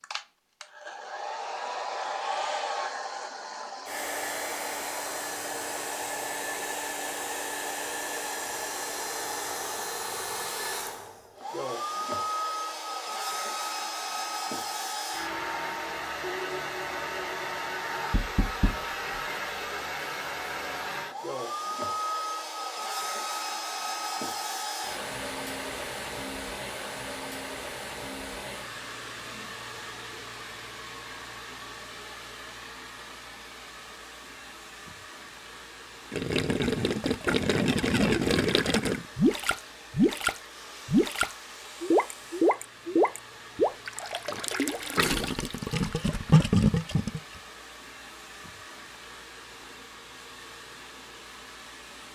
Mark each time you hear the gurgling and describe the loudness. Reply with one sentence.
The gurgling can be heard from 36.1 to 47.2 s, at a steady volume.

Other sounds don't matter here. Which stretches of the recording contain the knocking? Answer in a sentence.
You can hear the knocking from 18.1 to 18.8 s.